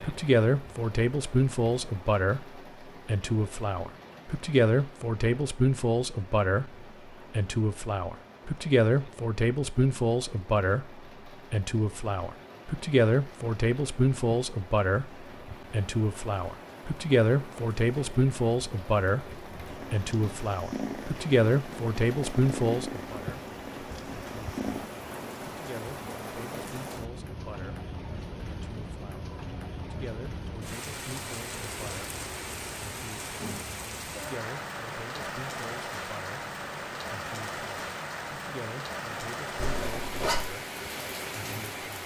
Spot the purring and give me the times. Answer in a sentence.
The purring can be heard from 19.7 to 24.9 s.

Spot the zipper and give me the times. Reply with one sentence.
You can hear the zipper from 39.5 to 40.5 s.